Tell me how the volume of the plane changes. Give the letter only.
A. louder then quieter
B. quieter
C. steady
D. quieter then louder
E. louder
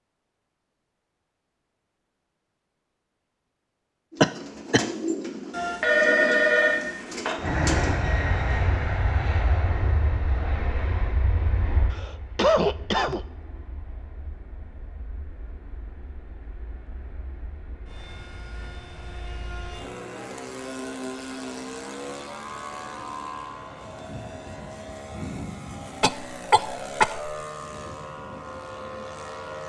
D.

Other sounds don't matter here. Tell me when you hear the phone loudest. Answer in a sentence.
The loudest moment of the phone is at 6 seconds.